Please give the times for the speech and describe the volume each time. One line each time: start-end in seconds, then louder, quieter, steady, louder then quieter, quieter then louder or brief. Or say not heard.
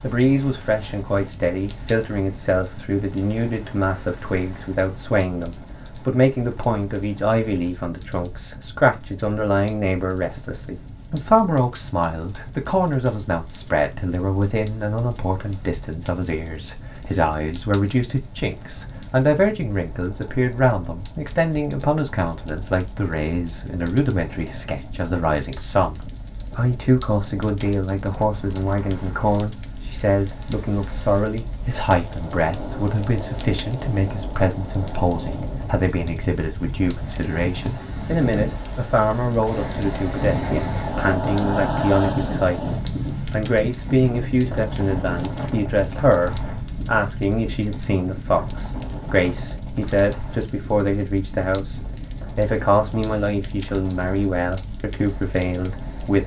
0.0-56.2 steady.